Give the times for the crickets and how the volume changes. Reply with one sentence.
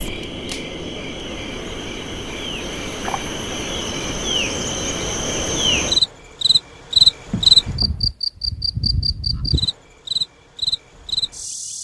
The crickets can be heard from 0.0 to 11.7 s, getting louder then quieter.